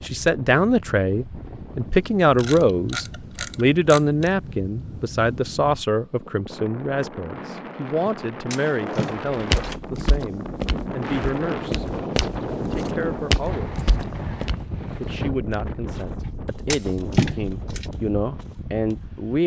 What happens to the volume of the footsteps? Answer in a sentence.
The loudness of the footsteps goes down.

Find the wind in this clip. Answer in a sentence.
The wind can be heard from 0.0 to 19.4 s.